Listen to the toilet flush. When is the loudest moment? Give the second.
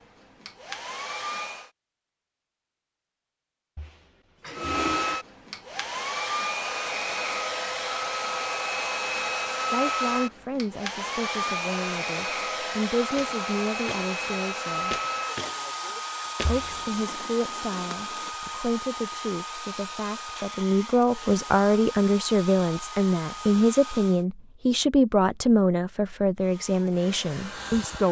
5 s.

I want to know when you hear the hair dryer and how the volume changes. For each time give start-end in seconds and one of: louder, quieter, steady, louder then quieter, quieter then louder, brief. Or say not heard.
0.0-1.7 brief
4.5-24.2 quieter
26.4-28.0 brief.